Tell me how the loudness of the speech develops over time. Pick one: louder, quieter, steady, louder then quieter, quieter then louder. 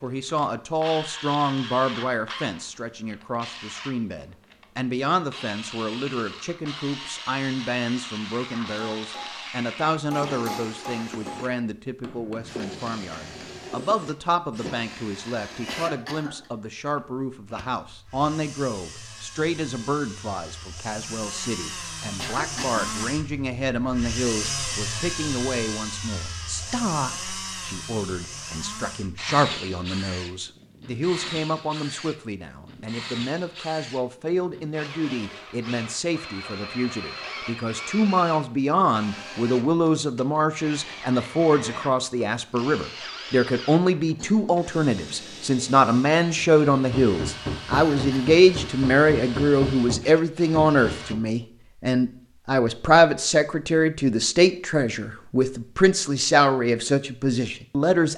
louder.